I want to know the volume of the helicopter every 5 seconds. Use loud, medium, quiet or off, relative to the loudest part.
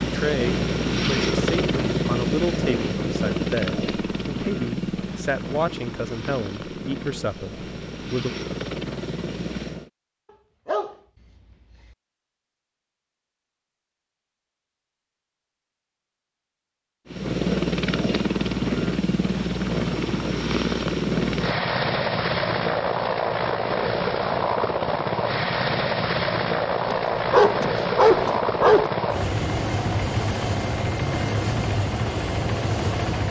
loud, medium, off, loud, loud, loud, loud.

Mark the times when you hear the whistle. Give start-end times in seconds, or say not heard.
not heard.